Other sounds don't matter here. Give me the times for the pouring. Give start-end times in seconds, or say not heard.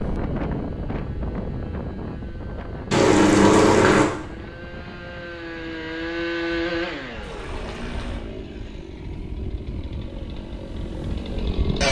2.9-4.0, 7.2-8.2.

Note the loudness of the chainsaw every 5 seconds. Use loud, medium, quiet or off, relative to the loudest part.
quiet, loud, loud.